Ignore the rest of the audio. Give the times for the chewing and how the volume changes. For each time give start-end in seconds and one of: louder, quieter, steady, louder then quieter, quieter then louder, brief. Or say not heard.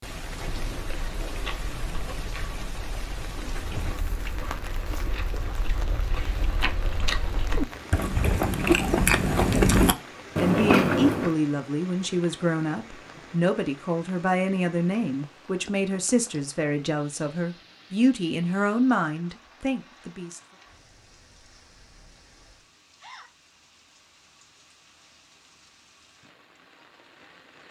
0.5-11.3 louder.